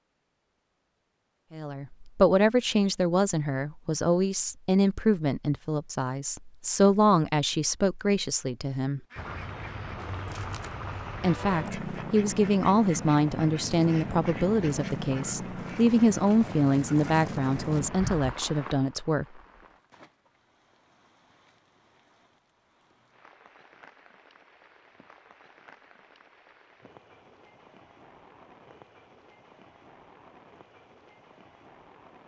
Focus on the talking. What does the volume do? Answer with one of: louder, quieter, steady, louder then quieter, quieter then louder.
steady.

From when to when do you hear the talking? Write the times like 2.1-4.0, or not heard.
1.5-9.0, 11.2-19.2.